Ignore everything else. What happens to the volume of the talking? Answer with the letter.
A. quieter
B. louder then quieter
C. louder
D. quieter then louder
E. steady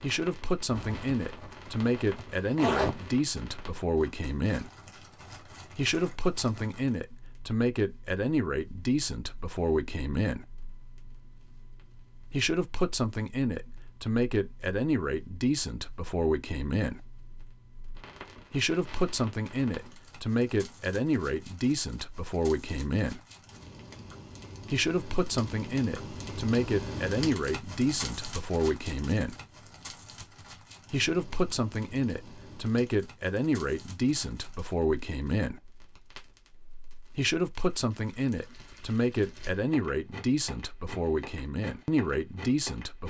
E.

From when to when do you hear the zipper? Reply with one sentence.
The zipper can be heard from 0.7 to 3.1 s.